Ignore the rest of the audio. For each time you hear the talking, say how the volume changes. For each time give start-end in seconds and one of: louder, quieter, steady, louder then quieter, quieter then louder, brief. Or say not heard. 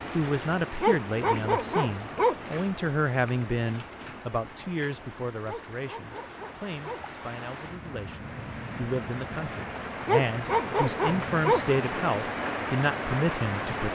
0.1-13.9 quieter then louder.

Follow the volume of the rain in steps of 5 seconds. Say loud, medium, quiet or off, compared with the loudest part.
medium, medium, loud.